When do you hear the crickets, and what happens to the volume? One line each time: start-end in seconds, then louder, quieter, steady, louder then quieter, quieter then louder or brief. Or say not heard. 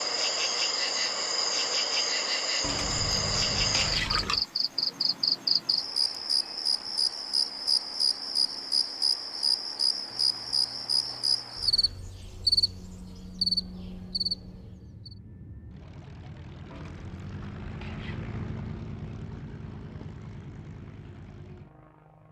0.0-15.2 steady.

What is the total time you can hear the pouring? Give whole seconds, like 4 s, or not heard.
5 s.